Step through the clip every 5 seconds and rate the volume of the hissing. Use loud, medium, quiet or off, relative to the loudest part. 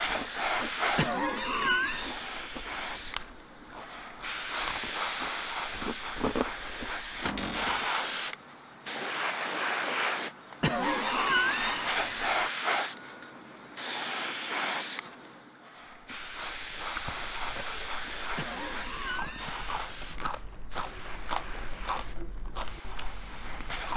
loud, loud, loud, medium, quiet.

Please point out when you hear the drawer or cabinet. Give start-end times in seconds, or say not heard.
7.2-7.8.